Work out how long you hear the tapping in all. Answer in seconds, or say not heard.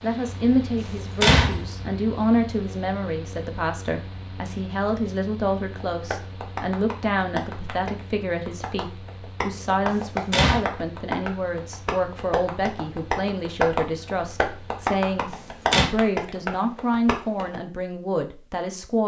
12 s.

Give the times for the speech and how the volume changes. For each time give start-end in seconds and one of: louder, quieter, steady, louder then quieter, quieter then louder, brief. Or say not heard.
0.0-19.0 steady.